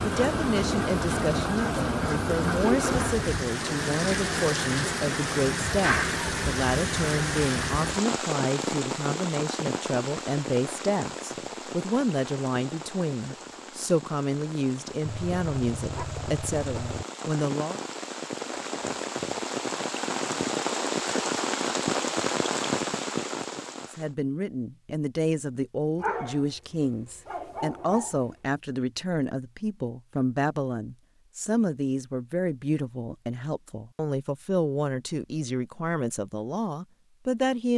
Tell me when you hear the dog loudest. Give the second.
26 s.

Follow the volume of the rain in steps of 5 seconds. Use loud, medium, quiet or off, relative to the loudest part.
loud, loud, medium, medium, loud, off, off, off.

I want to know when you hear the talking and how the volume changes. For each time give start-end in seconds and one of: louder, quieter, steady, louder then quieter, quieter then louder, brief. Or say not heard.
0.0-17.8 steady
23.9-37.7 steady.